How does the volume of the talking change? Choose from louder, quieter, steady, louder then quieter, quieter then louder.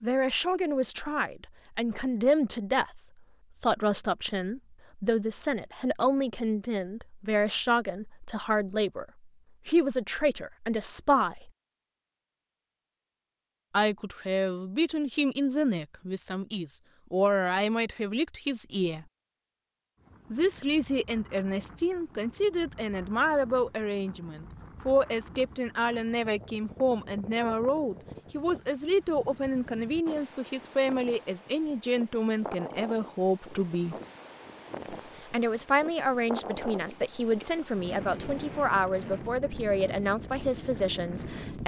steady.